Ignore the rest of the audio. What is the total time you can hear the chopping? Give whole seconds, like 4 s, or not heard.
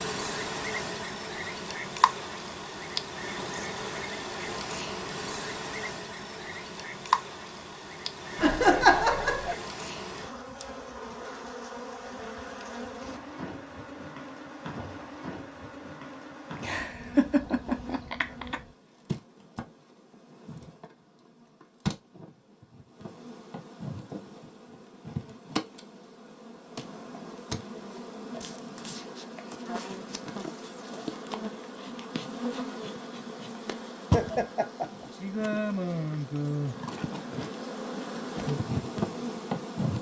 not heard.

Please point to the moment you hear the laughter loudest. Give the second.
9 s.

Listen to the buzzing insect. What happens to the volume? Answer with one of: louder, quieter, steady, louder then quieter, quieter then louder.
quieter then louder.